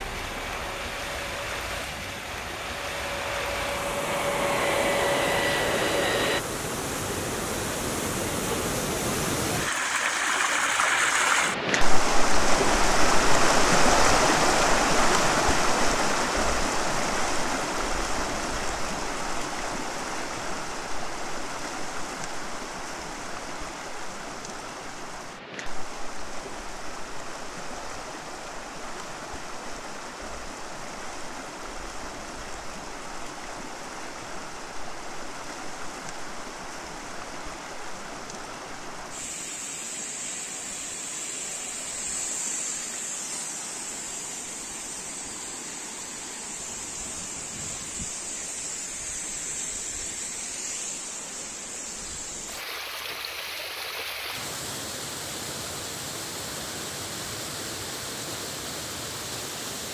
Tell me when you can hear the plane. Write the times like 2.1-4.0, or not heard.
0.0-6.4.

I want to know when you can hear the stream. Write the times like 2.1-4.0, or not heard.
0.0-59.8.